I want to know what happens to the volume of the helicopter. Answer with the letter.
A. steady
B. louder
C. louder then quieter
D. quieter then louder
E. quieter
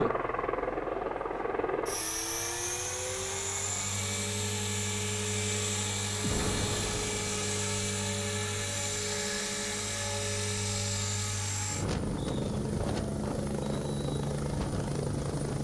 A.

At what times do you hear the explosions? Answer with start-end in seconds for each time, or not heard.
6.2-7.6.